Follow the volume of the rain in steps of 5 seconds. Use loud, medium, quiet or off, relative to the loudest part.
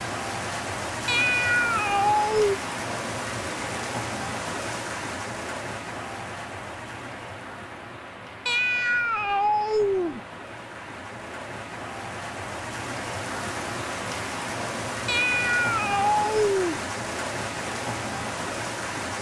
loud, medium, loud, loud.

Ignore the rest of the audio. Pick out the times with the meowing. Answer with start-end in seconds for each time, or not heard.
1.1-2.5, 8.4-10.2, 15.1-16.9.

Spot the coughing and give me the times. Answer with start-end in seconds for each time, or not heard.
not heard.